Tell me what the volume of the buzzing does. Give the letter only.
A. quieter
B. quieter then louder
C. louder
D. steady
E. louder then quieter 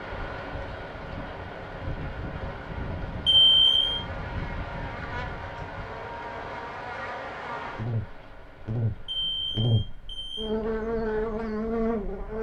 C.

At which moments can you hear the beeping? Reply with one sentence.
You can hear the beeping from 3.2 to 4.0 s and from 9.1 to 10.5 s.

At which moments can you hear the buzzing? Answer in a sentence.
You can hear the buzzing from 3.8 to 12.3 s.